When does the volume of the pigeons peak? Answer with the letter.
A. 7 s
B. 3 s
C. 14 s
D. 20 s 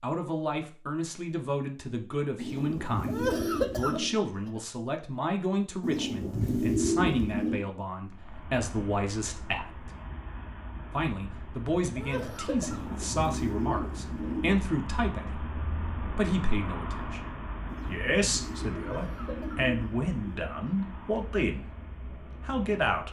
A.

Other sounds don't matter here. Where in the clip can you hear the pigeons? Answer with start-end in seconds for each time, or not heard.
2.4-4.2, 5.8-7.7, 12.6-14.6, 17.6-20.5.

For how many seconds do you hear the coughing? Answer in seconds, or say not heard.
3 s.